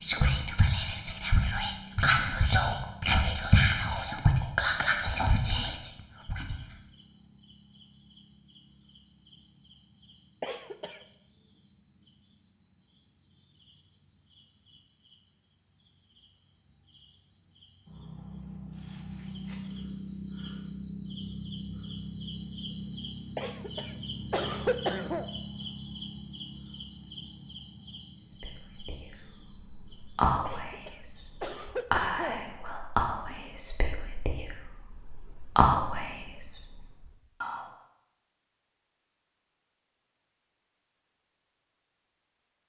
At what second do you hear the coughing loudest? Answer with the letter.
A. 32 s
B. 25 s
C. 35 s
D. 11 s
B.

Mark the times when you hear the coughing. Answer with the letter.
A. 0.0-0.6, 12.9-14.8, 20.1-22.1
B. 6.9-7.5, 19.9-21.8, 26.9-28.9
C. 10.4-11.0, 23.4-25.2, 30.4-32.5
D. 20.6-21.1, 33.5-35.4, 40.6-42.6
C.